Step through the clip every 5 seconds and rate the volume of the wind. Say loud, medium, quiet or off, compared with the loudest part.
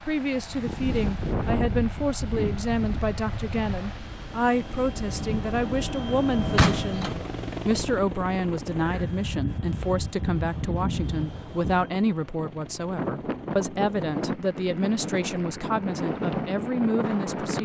loud, medium, loud, loud.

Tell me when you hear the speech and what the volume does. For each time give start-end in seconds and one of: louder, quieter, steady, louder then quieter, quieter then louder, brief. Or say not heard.
0.1-17.6 steady.